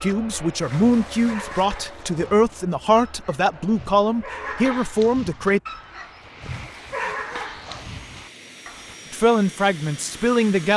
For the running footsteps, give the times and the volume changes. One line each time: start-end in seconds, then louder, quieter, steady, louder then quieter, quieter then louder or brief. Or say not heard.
not heard.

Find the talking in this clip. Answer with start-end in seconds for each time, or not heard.
0.0-5.6, 9.1-10.7.